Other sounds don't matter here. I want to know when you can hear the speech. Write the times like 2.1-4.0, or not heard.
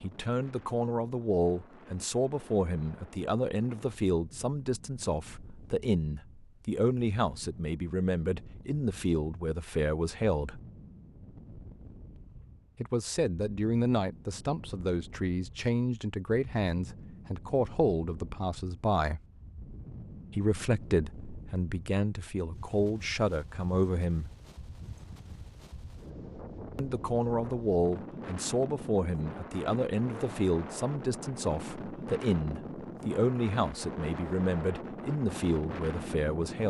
0.0-10.6, 12.8-19.2, 20.3-24.3, 26.8-36.6.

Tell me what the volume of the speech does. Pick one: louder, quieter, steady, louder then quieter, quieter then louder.
steady.